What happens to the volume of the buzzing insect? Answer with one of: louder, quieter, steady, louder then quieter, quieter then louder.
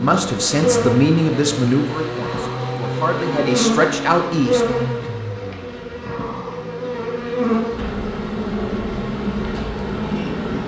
steady.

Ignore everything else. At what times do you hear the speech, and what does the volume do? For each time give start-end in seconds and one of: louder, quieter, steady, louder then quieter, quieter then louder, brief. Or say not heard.
0.0-4.7 quieter then louder.